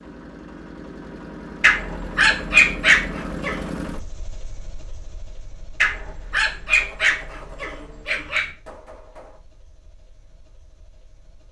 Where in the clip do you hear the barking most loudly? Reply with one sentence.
The loudest moment of the barking is at 3 seconds.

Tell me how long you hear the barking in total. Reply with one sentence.
The barking can be heard for 5 seconds in total.